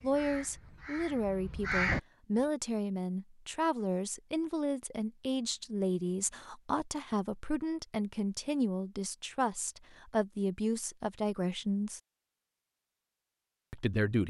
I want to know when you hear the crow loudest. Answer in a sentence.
The volume of the crow peaks at 2 seconds.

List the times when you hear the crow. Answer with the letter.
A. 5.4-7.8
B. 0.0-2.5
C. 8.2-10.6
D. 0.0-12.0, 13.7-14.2
B.